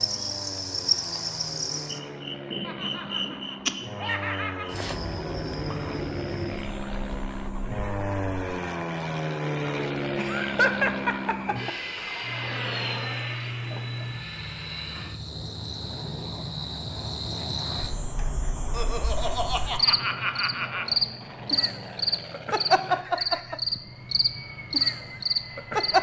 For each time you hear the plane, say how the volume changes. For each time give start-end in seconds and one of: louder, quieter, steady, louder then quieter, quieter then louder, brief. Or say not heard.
0.0-25.9 louder then quieter.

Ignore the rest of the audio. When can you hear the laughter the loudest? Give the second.
11 s.